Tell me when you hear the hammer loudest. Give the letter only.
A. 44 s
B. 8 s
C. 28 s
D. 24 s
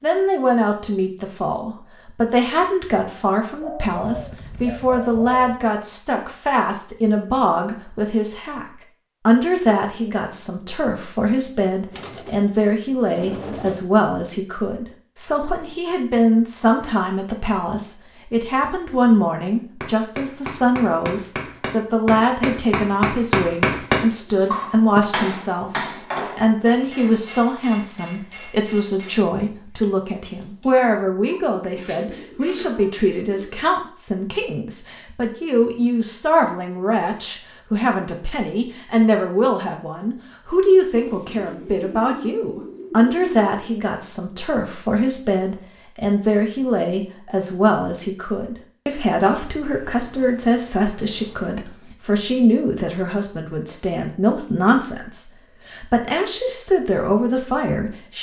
D.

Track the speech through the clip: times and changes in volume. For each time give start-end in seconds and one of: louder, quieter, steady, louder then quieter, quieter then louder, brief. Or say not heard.
0.0-58.1 steady.